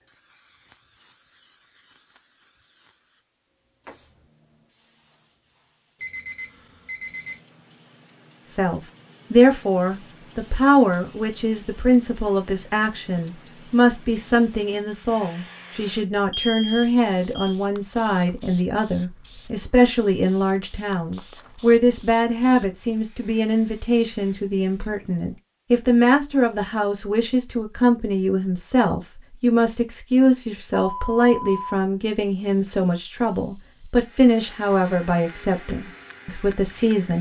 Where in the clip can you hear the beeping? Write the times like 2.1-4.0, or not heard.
6.0-7.4, 16.3-17.6, 30.8-31.8.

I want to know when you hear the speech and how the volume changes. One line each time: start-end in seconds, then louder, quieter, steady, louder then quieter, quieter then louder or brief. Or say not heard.
8.4-37.1 steady.